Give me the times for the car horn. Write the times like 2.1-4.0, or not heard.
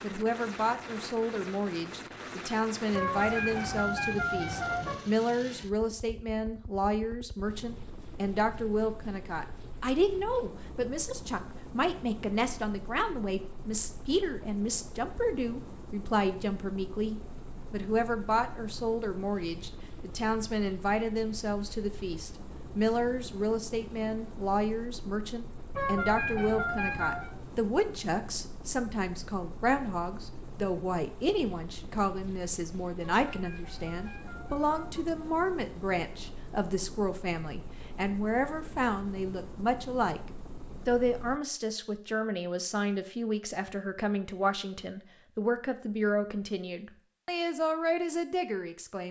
2.9-5.0, 25.8-27.3, 33.2-35.0.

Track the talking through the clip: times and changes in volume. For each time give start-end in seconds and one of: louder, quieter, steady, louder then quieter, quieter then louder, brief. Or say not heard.
0.0-40.2 steady
40.9-49.0 steady.